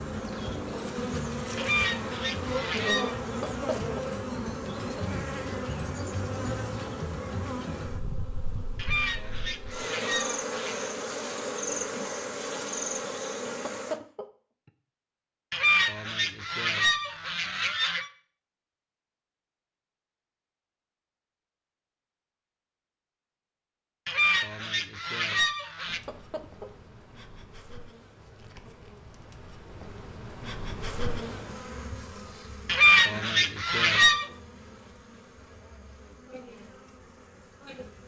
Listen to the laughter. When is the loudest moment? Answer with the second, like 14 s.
14 s.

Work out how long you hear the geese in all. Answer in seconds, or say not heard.
10 s.